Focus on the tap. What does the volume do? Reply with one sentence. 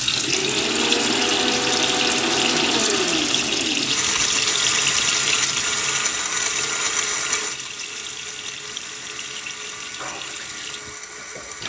The loudness of the tap goes down.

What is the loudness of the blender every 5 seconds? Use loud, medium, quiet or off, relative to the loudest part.
loud, loud, quiet.